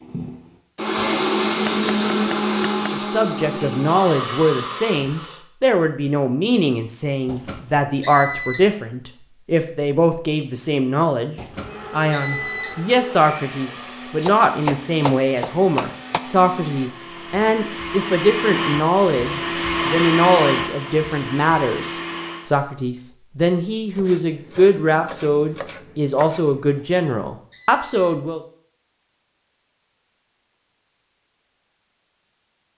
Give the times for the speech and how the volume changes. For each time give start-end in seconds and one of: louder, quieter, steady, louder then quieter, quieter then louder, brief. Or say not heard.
2.9-28.4 steady.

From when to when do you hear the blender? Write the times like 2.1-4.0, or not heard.
0.0-5.4, 11.5-22.5.